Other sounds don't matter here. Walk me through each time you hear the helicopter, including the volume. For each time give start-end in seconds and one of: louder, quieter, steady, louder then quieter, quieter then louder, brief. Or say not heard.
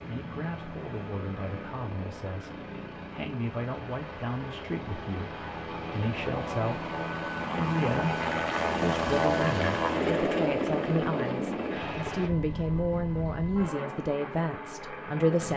0.0-15.5 louder then quieter.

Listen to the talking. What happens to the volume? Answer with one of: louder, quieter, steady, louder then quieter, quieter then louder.
louder.